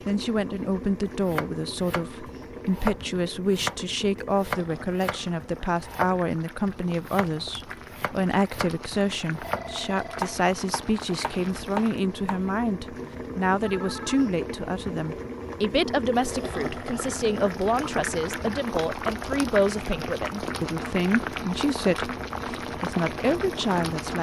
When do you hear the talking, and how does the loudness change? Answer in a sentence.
The talking can be heard from 0.1 to 24.1 s, at a steady volume.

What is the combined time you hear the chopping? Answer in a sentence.
You can hear the chopping for 11 seconds altogether.